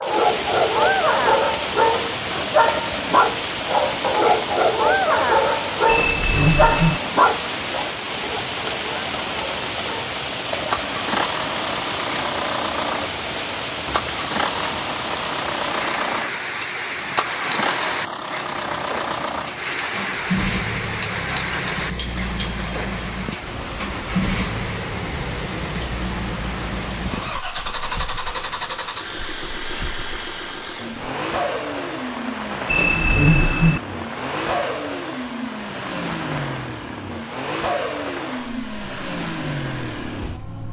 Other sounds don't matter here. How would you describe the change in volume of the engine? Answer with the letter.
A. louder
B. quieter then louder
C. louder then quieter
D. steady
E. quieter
D.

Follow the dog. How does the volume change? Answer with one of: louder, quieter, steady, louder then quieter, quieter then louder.
quieter.